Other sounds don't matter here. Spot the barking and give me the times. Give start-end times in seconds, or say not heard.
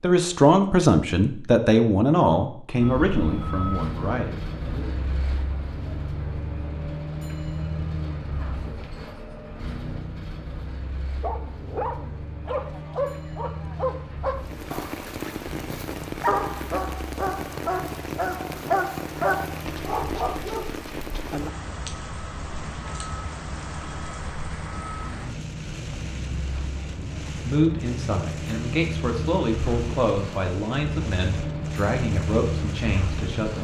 11.2-21.4.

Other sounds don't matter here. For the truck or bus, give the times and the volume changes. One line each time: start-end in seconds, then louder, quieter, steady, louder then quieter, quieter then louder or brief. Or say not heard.
2.8-33.5 quieter then louder.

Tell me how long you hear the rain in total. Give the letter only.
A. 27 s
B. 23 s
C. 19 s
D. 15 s
C.